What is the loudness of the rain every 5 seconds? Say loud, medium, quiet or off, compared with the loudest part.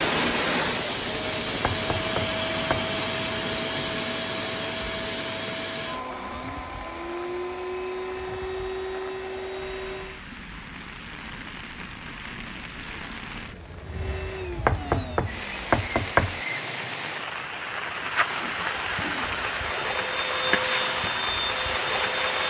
medium, quiet, medium, loud, loud.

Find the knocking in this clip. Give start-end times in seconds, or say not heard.
1.4-3.0, 14.5-16.4.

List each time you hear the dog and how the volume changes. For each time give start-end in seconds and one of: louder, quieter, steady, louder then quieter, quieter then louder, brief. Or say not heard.
not heard.